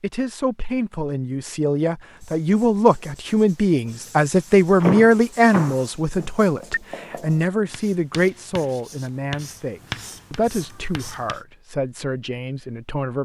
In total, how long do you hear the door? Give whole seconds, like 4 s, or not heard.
2 s.